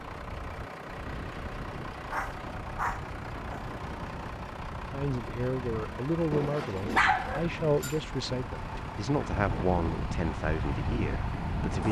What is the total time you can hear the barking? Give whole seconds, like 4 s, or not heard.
3 s.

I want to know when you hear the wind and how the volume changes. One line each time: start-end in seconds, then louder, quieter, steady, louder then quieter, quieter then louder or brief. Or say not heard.
0.0-11.8 louder.